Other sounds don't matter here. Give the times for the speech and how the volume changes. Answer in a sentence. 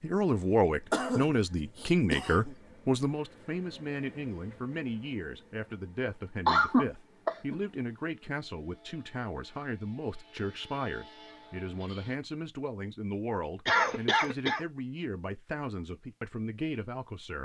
You can hear the speech from 0.0 to 17.3 s, getting quieter.